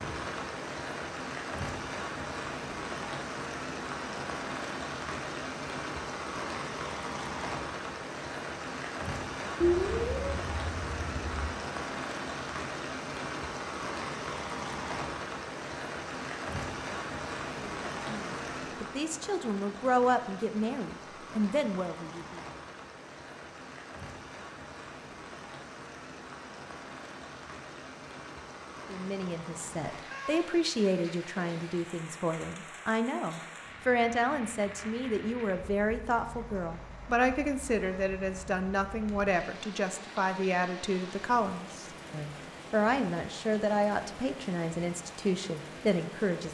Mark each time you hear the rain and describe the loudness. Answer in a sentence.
The rain can be heard from 0.0 to 46.4 s, getting quieter.